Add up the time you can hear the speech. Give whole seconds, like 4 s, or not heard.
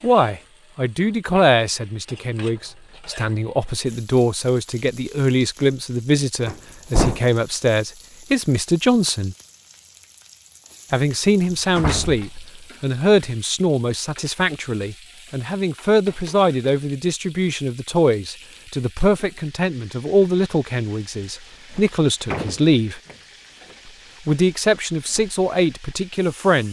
24 s.